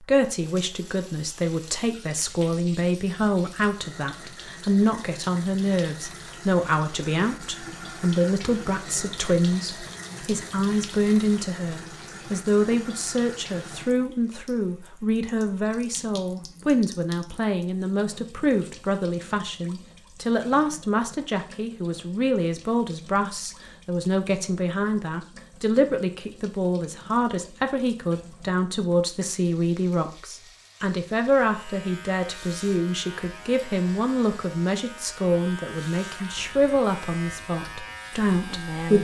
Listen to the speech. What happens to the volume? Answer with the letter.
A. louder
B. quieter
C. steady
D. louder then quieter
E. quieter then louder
C.